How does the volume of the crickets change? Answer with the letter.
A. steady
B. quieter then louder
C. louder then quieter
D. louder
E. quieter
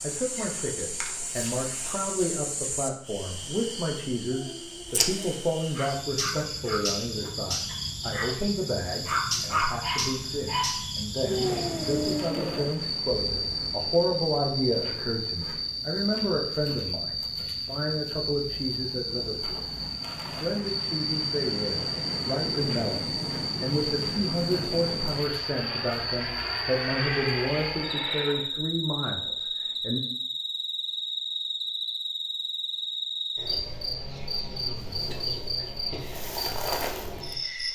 A.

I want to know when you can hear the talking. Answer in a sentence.
The talking can be heard from 0.0 to 30.0 s.